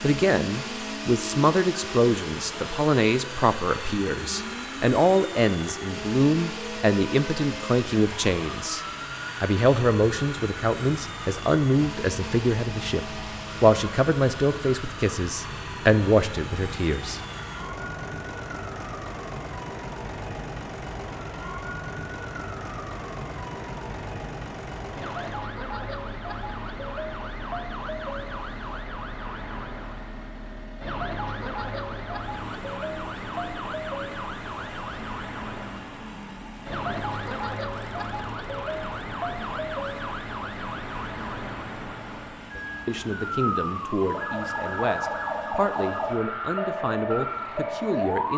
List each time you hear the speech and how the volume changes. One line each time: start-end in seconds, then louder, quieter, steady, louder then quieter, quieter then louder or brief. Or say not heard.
0.0-8.8 steady
9.4-17.2 steady
42.9-48.3 steady.